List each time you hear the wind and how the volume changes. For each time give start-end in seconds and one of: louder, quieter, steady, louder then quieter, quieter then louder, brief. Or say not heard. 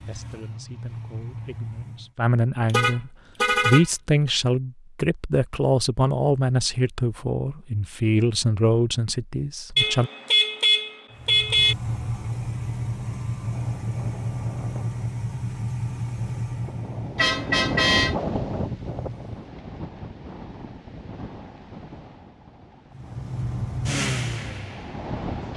11.8-25.5 louder then quieter.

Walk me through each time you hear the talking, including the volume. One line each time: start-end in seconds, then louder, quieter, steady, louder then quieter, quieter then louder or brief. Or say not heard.
0.0-10.1 louder.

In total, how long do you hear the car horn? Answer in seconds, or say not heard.
4 s.